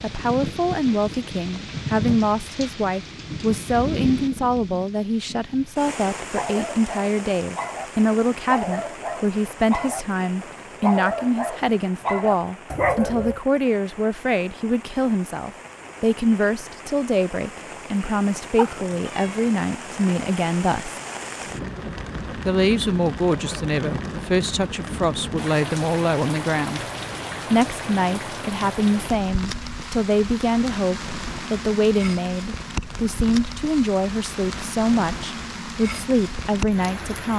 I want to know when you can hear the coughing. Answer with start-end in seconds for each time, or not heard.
not heard.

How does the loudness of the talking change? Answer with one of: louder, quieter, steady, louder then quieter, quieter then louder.
steady.